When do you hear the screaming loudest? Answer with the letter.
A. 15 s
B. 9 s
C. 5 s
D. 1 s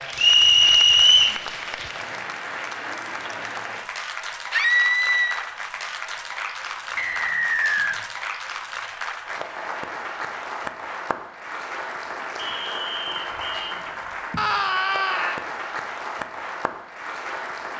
C.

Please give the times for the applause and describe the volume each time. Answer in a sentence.
You can hear the applause from 0.0 to 17.7 s, at a steady volume.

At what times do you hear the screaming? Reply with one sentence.
The screaming can be heard from 4.5 to 5.5 s and from 14.3 to 15.4 s.